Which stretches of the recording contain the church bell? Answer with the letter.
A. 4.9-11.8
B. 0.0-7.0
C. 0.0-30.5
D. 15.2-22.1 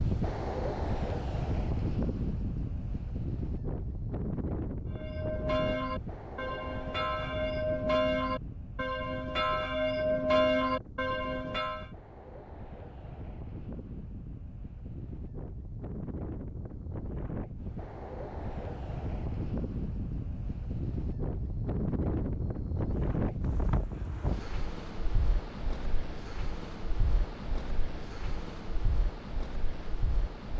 A.